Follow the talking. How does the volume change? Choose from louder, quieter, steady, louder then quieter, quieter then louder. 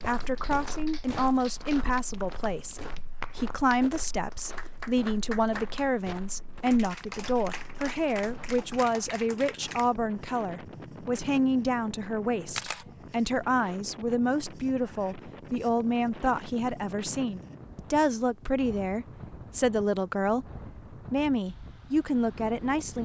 steady.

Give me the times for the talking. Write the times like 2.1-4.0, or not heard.
0.1-23.0.